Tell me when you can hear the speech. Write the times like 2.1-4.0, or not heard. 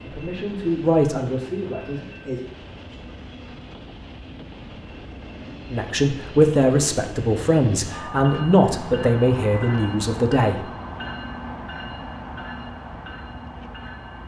0.0-2.5, 5.7-10.7.